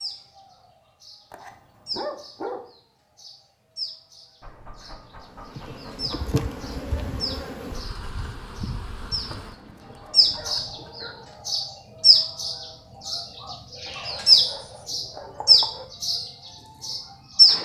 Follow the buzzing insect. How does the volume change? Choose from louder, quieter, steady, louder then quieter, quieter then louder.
quieter.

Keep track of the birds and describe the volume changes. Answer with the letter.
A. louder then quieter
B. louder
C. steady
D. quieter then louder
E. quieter
B.